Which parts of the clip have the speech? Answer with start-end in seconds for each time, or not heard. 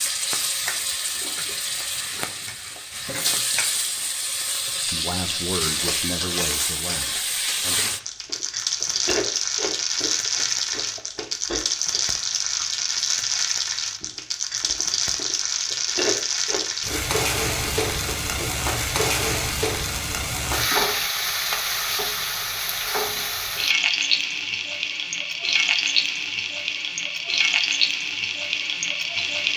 4.9-7.9.